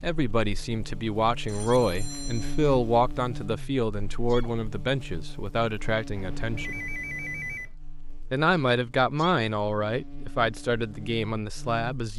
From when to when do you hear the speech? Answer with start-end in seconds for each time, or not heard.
0.0-6.8, 8.3-12.1.